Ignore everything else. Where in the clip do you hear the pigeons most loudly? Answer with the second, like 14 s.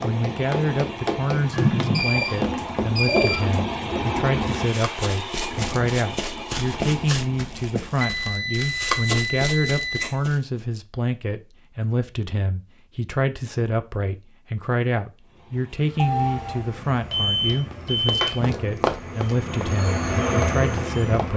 2 s.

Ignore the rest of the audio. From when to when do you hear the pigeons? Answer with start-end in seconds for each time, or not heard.
1.5-3.6.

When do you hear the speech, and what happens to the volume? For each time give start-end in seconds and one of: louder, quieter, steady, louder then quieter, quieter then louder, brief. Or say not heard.
0.0-21.3 steady.